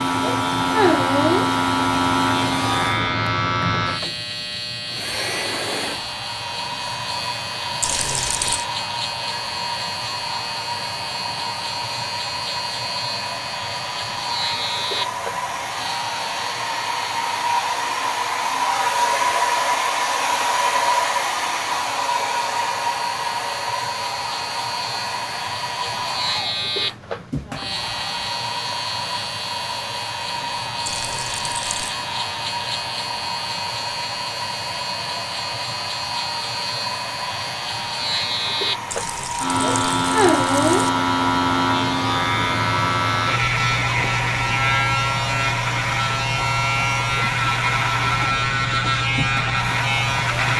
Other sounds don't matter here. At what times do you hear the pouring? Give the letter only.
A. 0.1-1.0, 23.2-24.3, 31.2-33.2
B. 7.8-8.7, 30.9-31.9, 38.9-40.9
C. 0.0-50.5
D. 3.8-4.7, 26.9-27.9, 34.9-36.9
B.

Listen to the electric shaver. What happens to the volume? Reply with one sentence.
The loudness of the electric shaver goes down, then up.